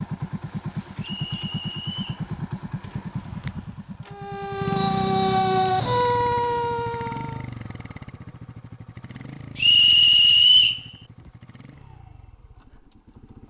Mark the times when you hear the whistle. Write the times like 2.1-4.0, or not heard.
1.0-2.2, 4.7-6.2, 9.6-10.8.